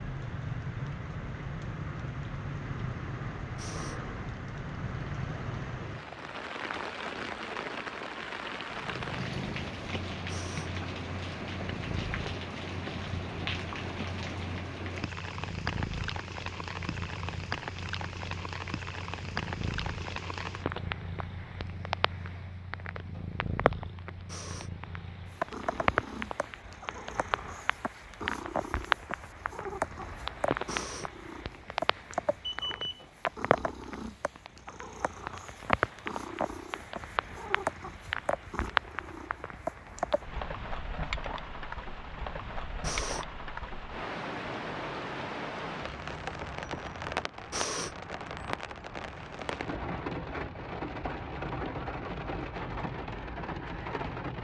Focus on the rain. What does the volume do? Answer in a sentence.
The volume of the rain stays about the same.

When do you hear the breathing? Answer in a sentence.
The breathing can be heard from 3.5 to 4.0 s, from 10.2 to 10.7 s, from 24.2 to 24.7 s, from 30.6 to 31.1 s, from 42.8 to 43.2 s and from 47.5 to 48.0 s.